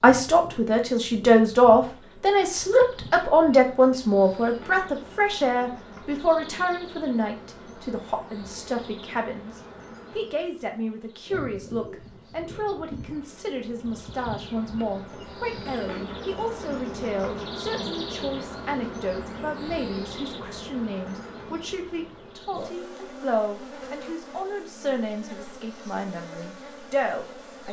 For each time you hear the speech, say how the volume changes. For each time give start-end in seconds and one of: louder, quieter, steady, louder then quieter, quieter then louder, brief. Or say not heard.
0.0-27.6 quieter.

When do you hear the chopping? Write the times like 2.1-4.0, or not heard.
not heard.